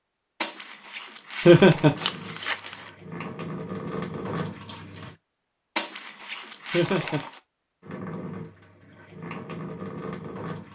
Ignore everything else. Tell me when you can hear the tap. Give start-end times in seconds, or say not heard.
1.8-5.2, 7.8-10.7.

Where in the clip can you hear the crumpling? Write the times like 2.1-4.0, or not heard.
0.4-2.9, 5.8-7.4.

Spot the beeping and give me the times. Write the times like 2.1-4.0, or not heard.
not heard.